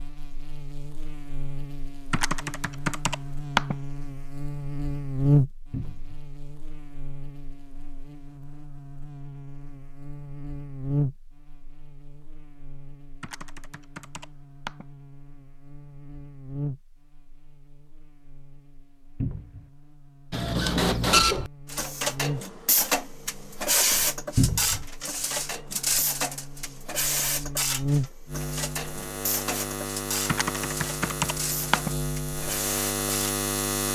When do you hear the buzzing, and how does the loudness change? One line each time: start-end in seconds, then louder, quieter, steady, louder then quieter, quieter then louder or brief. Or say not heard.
0.0-33.9 quieter then louder.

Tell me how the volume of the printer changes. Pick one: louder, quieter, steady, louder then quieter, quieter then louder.
quieter.